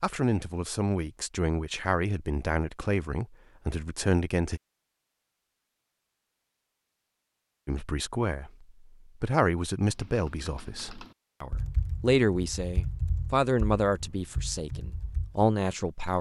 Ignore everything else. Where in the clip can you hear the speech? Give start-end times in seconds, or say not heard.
0.0-4.6, 7.7-16.1.